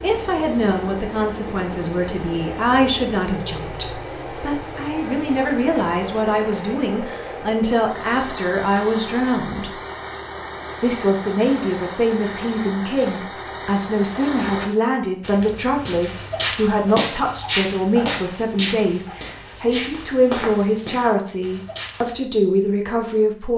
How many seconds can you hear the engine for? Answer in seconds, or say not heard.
15 s.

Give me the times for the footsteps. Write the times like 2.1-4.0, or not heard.
15.2-22.1.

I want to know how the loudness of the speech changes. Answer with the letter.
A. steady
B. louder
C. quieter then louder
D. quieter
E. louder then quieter
A.